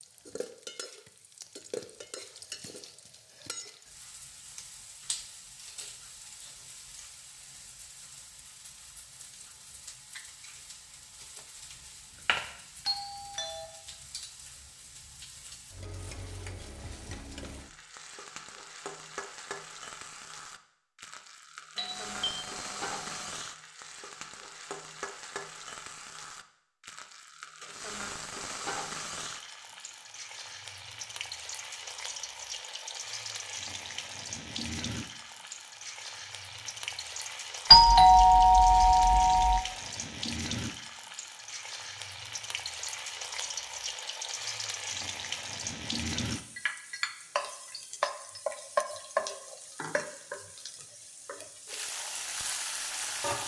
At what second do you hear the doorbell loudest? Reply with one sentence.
The loudest moment of the doorbell is at 38 seconds.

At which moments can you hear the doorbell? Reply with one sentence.
The doorbell can be heard from 12.8 to 13.7 s, from 21.8 to 23.2 s and from 37.7 to 39.6 s.